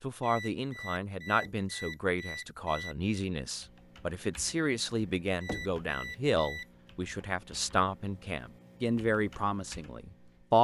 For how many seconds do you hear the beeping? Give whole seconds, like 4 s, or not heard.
4 s.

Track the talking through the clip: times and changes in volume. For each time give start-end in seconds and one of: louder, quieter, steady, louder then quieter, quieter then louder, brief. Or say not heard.
0.0-10.6 steady.